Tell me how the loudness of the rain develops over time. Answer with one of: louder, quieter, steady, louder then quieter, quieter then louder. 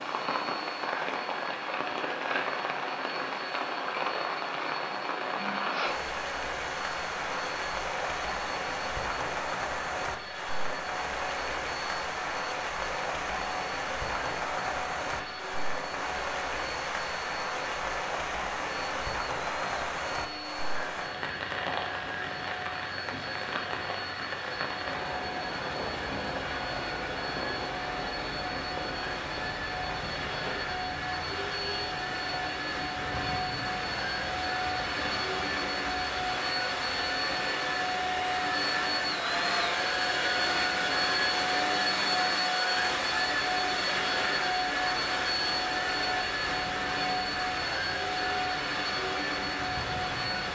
quieter.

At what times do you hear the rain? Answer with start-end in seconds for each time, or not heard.
0.0-50.5.